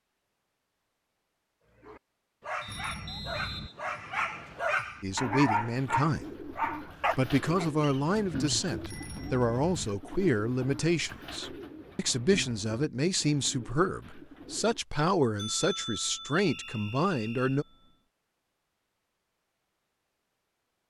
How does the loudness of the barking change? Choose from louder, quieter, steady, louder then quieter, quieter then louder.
louder.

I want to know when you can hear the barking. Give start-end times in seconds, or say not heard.
1.8-7.7.